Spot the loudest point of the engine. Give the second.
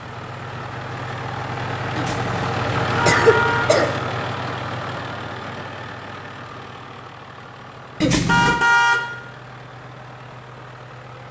3 s.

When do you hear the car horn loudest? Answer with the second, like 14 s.
9 s.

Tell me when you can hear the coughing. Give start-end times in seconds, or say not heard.
1.9-4.0, 8.0-8.7.